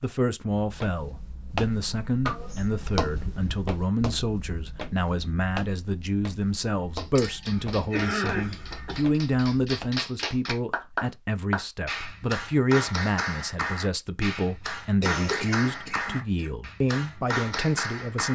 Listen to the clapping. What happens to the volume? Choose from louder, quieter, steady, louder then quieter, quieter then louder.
louder.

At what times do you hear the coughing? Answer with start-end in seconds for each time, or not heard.
2.2-3.6, 7.5-9.1, 15.0-16.5.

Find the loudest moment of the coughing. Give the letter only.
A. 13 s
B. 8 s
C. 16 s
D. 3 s
B.